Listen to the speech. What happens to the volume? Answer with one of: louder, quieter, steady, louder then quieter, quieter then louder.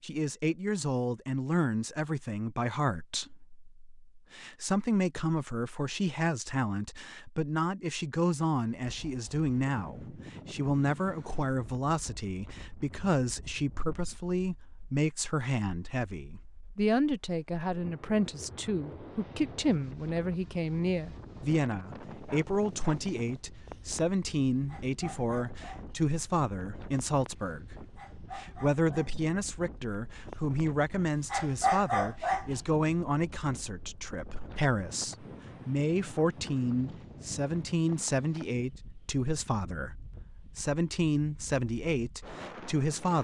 steady.